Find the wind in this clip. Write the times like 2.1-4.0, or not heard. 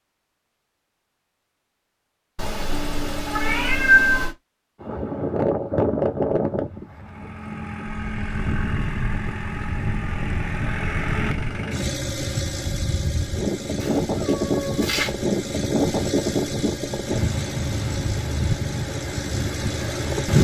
4.8-20.3.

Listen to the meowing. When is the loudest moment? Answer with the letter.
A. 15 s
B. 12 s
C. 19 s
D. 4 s
D.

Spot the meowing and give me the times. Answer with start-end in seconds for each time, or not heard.
2.4-4.3, 13.8-15.2.